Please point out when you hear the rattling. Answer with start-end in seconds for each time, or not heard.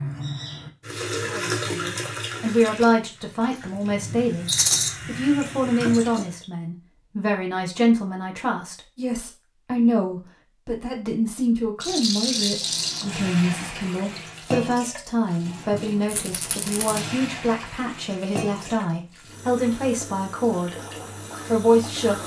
4.5-4.9, 11.8-13.1, 16.1-17.1.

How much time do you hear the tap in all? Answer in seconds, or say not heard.
17 s.